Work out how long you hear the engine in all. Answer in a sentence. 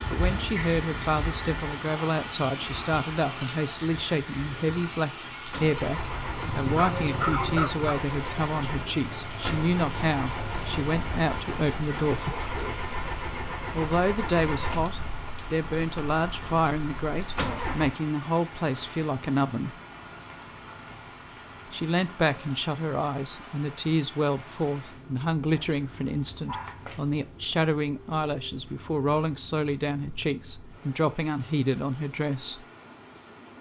The engine can be heard for 13 seconds in total.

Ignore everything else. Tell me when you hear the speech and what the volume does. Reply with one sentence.
You can hear the speech from 0.1 to 12.4 s, at a steady volume; from 13.7 to 19.8 s, at a steady volume; and from 21.6 to 32.6 s, at a steady volume.